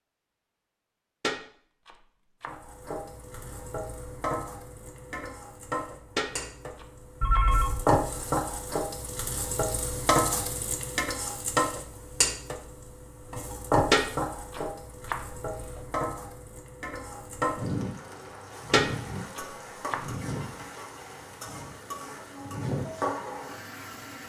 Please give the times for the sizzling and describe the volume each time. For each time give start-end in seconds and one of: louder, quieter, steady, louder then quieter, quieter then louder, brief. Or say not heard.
2.5-24.2 louder then quieter.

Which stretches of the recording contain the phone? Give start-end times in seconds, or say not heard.
7.2-7.8.